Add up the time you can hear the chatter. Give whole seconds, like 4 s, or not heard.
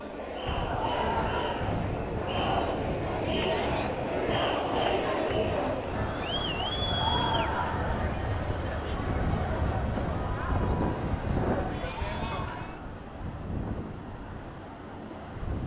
13 s.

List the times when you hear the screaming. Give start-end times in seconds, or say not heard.
0.7-1.8, 6.8-8.0, 11.9-12.8.